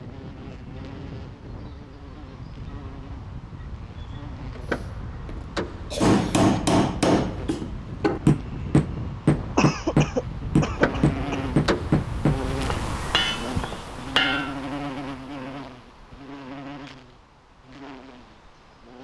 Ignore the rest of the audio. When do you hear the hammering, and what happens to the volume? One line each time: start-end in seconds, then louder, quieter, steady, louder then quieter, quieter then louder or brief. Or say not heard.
6.0-14.6 quieter.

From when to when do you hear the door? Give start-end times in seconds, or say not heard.
4.5-6.0, 10.7-12.1.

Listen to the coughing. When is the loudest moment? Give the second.
10 s.